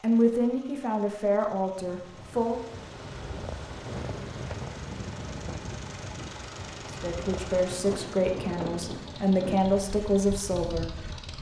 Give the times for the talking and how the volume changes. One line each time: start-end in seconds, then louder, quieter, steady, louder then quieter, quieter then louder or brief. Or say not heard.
0.0-2.6 brief
6.9-10.9 quieter then louder.